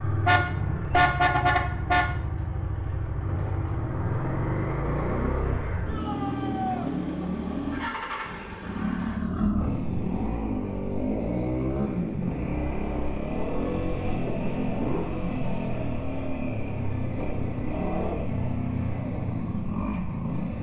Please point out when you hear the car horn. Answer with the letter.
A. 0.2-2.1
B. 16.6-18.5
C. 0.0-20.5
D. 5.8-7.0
A.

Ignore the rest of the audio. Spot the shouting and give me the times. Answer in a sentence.
You can hear the shouting from 5.8 to 7.0 s.